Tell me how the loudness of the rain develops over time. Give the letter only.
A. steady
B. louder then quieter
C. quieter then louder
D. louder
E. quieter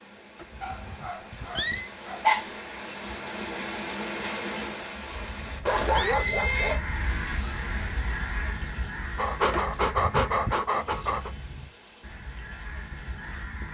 B.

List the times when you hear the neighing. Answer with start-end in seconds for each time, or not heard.
0.3-1.9, 4.8-6.8, 9.5-10.6.